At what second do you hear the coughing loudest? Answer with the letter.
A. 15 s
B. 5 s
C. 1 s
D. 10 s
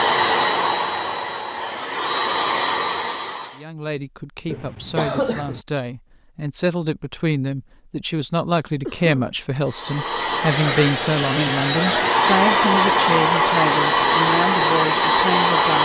B.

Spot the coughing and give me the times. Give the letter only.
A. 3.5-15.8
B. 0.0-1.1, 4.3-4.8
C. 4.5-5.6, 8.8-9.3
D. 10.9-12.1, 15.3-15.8
C.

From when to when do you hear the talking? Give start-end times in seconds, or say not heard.
3.5-15.8.